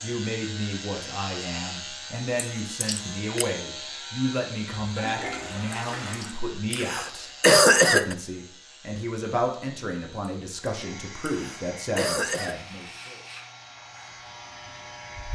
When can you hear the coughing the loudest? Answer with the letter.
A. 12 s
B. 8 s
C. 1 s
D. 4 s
B.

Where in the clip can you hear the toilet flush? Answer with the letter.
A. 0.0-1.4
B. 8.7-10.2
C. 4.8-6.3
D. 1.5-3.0
C.